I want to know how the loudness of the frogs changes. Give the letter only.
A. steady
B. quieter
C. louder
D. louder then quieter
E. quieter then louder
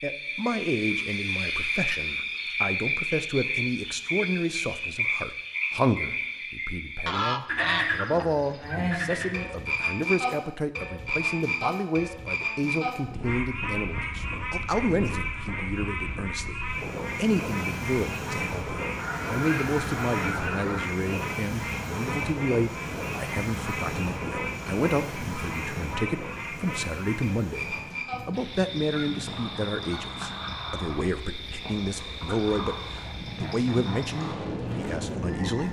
B.